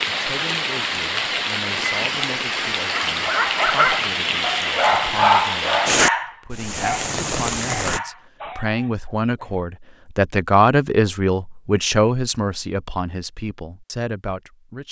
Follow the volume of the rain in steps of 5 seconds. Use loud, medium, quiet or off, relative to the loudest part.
loud, loud, off.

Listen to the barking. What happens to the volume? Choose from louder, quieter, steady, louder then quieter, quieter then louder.
quieter.